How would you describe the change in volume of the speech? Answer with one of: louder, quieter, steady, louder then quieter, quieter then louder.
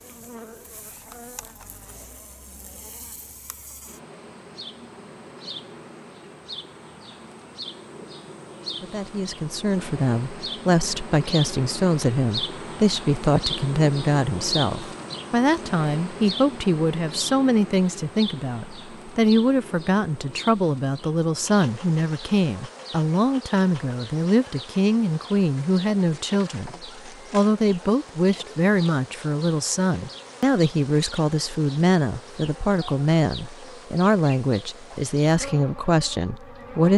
steady.